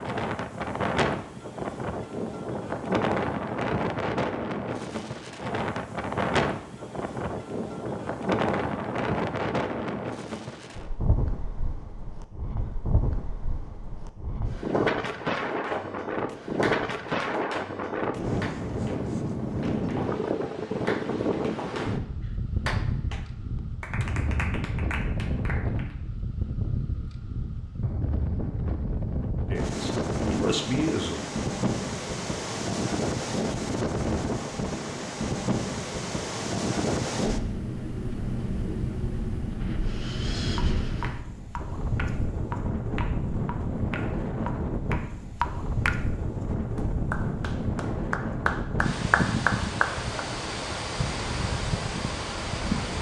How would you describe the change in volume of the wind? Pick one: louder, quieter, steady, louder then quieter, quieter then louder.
steady.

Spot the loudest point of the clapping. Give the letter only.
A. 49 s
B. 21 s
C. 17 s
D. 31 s
A.